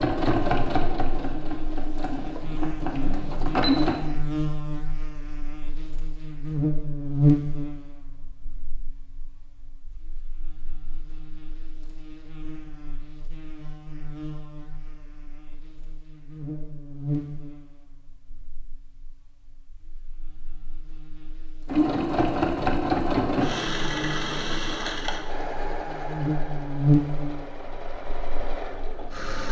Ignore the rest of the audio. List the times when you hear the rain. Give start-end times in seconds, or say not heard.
not heard.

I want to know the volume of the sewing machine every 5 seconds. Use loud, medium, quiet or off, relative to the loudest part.
loud, off, off, off, loud, medium.